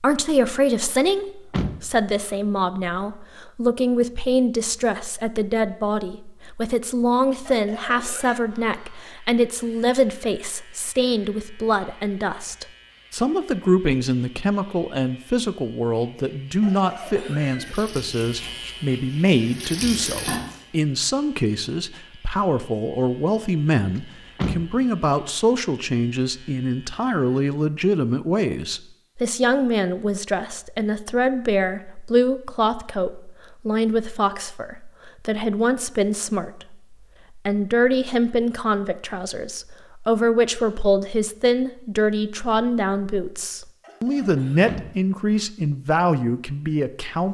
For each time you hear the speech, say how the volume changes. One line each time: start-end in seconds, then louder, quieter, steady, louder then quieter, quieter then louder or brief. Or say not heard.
0.0-47.2 steady.